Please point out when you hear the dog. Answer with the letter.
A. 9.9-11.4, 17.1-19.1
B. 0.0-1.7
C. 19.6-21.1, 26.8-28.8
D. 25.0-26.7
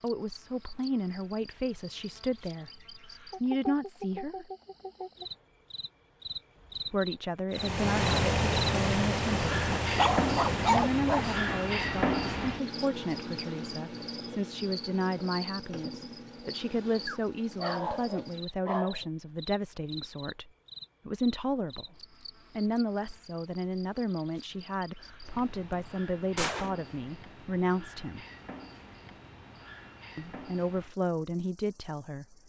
A.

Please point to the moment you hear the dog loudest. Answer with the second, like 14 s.
11 s.